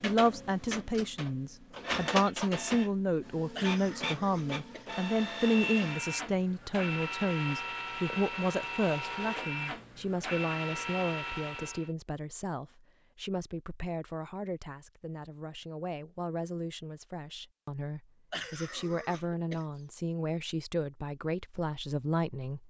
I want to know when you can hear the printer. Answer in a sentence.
The printer can be heard from 0.0 to 11.9 s.